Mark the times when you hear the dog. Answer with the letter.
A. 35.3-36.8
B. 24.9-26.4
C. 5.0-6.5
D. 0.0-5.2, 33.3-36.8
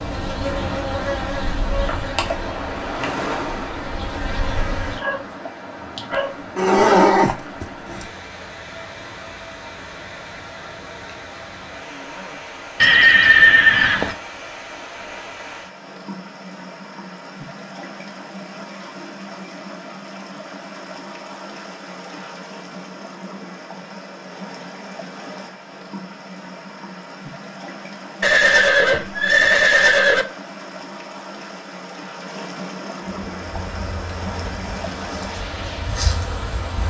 C.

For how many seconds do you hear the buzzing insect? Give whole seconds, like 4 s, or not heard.
9 s.